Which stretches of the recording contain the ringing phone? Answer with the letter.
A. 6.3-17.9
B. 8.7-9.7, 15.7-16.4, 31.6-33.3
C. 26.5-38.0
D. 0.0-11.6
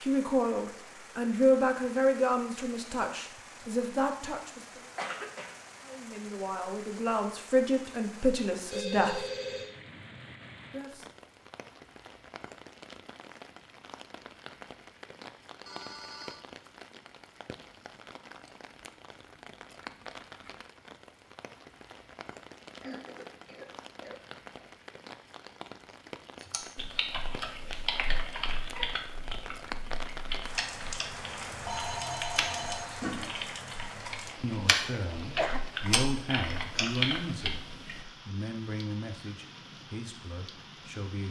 B.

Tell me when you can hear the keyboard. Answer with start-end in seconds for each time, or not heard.
26.5-38.0.